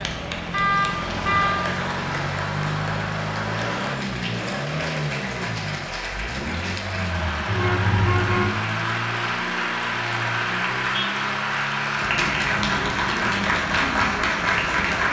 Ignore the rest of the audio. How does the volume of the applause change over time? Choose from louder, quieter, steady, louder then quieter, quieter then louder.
louder.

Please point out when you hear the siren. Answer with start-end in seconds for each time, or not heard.
not heard.